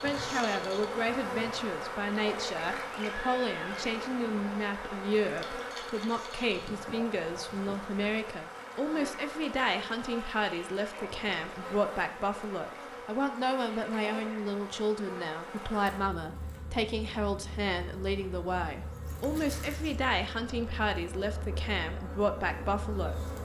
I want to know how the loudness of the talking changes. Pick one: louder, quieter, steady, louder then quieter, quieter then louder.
steady.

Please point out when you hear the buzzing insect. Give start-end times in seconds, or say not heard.
0.0-23.3.